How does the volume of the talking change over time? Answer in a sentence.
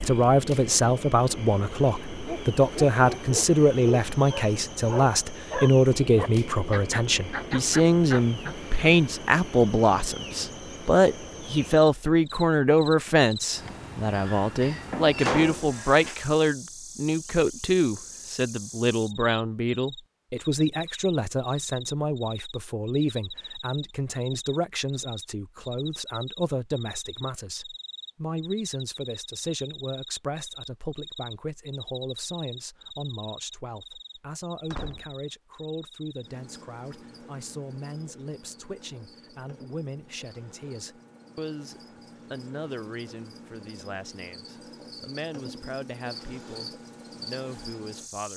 The loudness of the talking goes down.